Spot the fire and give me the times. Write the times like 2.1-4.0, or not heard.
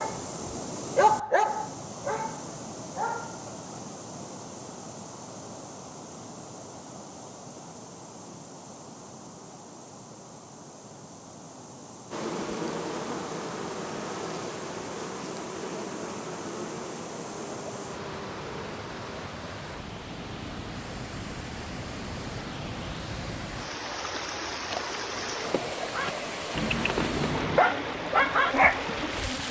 not heard.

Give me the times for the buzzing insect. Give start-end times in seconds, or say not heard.
12.1-19.3, 24.7-29.4.